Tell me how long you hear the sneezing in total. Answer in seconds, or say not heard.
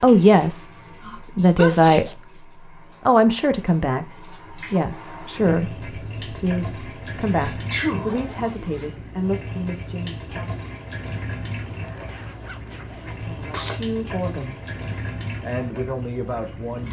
4 s.